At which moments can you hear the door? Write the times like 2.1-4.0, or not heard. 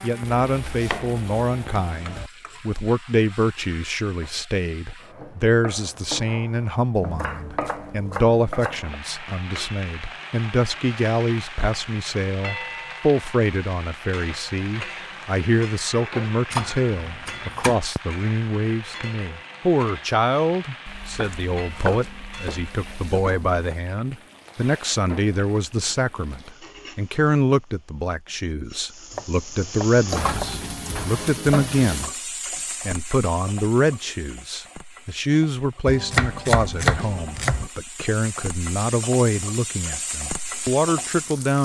not heard.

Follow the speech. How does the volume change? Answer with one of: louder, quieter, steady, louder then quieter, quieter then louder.
steady.